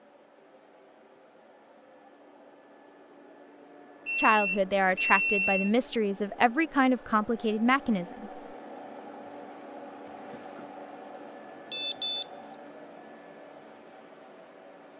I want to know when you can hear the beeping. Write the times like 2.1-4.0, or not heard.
4.0-5.7, 11.7-12.2.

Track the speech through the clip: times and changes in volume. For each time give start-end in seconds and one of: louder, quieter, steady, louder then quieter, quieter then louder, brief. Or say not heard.
4.2-8.3 steady.